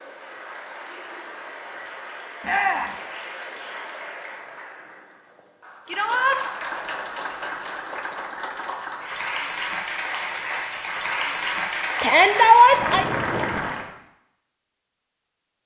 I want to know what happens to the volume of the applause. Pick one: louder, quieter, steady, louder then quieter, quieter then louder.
louder.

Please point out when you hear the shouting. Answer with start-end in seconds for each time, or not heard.
2.4-3.0, 5.8-6.4, 12.0-13.1.